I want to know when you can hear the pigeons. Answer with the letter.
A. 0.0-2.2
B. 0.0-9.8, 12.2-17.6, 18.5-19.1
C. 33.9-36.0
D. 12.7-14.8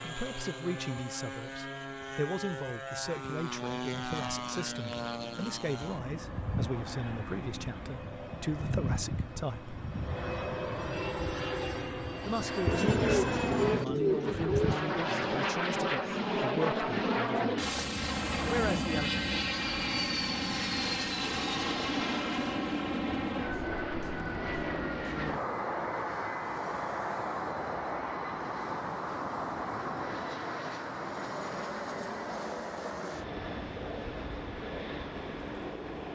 D.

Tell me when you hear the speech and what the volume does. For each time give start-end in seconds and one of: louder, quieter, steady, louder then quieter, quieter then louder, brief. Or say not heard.
0.0-9.8 steady
12.2-17.6 steady
18.5-19.1 brief.